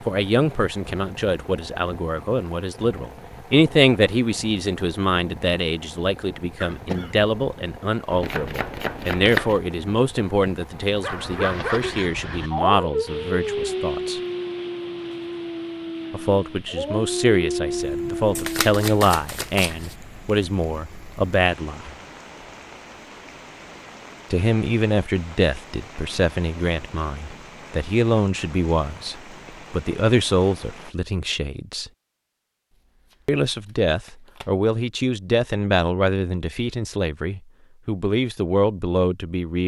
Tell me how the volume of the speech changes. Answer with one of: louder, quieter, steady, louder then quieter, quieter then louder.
steady.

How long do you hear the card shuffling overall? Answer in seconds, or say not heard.
5 s.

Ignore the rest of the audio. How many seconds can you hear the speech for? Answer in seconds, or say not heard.
34 s.